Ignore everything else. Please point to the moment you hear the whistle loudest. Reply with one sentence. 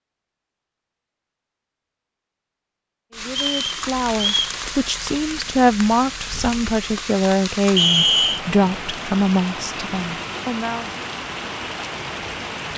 The loudest moment of the whistle is at 8 seconds.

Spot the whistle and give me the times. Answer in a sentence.
The whistle can be heard from 3.4 to 4.5 s and from 7.8 to 8.4 s.